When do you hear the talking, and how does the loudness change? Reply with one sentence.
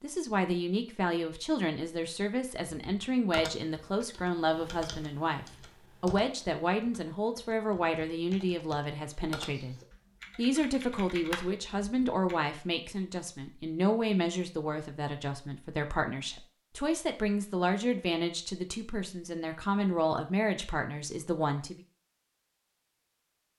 The talking can be heard from 0.0 to 9.8 s, at a steady volume; and from 10.3 to 21.8 s, at a steady volume.